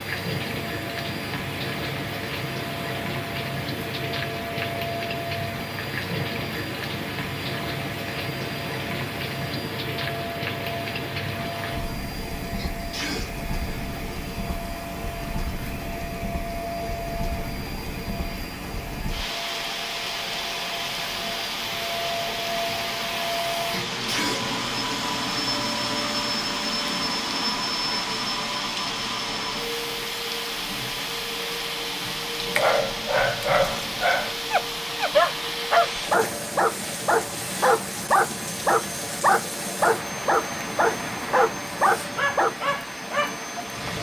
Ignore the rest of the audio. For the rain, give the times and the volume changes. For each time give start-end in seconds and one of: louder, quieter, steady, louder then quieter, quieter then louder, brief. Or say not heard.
0.0-43.9 steady.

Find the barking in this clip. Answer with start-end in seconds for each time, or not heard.
32.0-42.5.